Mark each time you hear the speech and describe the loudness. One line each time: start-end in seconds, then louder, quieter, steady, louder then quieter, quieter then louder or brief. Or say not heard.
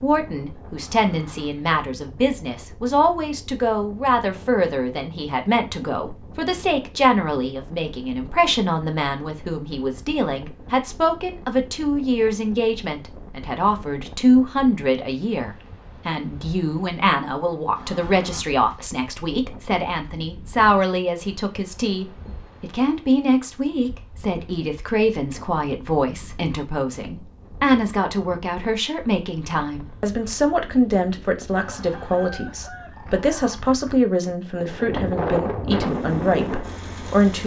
0.0-37.4 steady.